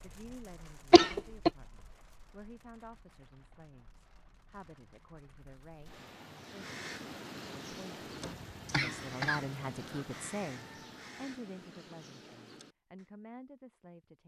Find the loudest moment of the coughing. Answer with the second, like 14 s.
1 s.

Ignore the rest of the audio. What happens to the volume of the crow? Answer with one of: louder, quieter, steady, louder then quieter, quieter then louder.
quieter.